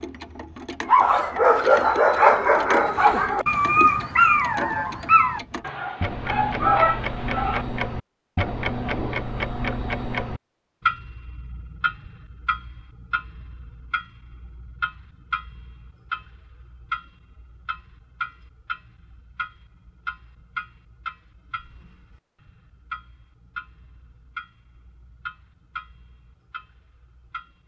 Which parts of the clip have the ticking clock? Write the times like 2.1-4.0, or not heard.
0.0-27.6.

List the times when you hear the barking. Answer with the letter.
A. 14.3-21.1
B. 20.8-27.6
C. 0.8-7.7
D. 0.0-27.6
C.